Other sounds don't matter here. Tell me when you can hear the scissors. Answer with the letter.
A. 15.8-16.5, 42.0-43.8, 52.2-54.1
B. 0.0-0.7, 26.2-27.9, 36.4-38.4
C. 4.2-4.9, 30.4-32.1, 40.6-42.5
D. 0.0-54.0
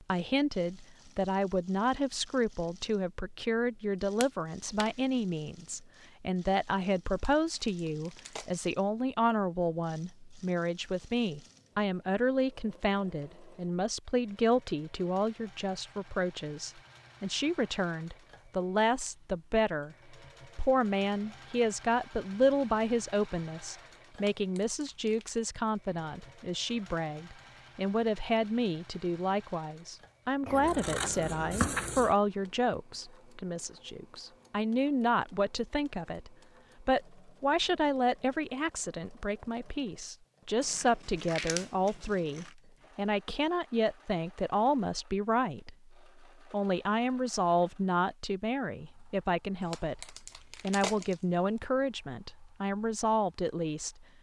C.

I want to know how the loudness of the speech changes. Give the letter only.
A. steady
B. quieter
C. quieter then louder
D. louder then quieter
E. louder
A.